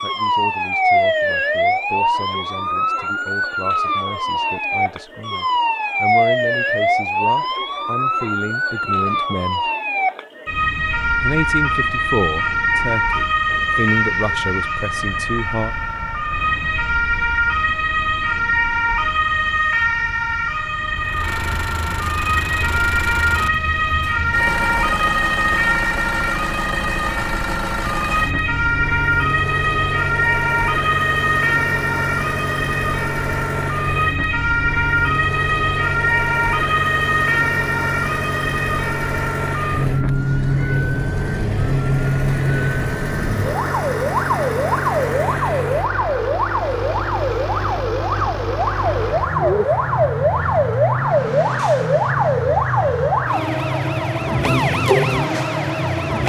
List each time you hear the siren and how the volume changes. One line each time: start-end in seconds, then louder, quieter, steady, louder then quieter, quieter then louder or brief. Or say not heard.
0.0-56.2 steady.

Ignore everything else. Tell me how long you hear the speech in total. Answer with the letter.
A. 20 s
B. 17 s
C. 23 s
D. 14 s
D.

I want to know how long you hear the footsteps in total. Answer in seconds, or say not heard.
not heard.